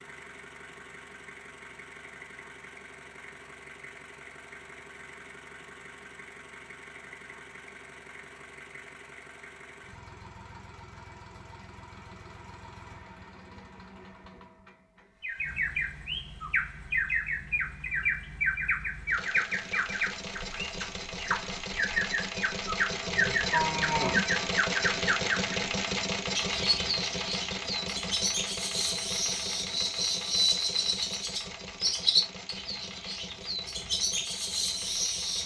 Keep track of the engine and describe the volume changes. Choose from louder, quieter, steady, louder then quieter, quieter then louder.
louder then quieter.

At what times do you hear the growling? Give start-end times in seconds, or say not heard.
not heard.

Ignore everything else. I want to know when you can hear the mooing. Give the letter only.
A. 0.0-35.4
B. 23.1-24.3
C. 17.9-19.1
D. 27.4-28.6
B.